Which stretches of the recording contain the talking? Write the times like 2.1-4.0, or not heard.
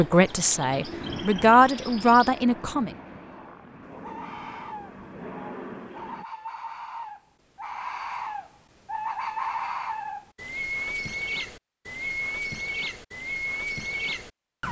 0.0-2.9.